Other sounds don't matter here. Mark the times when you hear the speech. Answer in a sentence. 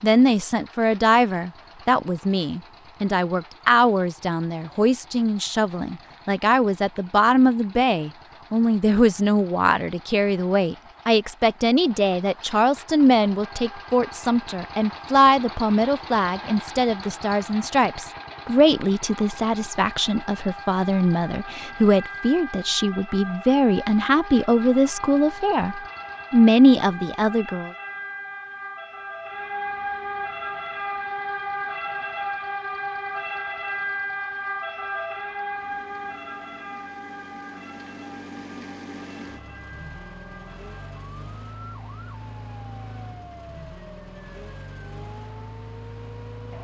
The speech can be heard from 0.0 to 27.7 s.